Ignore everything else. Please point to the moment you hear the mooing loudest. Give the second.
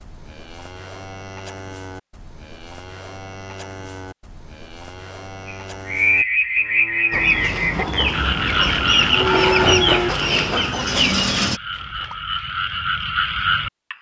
10 s.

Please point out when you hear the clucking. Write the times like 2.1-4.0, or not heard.
7.1-11.6.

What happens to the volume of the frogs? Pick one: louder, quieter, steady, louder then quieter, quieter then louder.
quieter then louder.